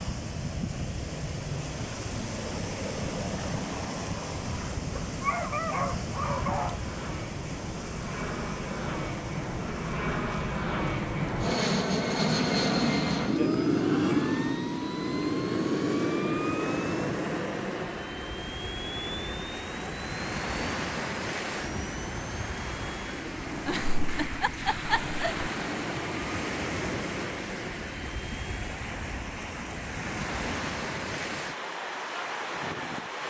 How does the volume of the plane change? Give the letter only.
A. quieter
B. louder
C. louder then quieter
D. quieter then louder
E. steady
C.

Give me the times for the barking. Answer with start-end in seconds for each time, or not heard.
5.0-6.8.